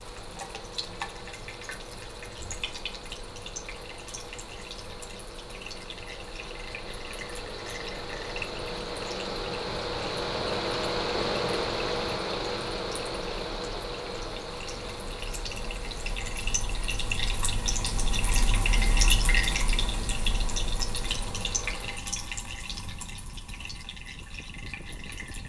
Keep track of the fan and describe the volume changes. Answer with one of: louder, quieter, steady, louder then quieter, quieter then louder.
louder then quieter.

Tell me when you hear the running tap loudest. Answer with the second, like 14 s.
19 s.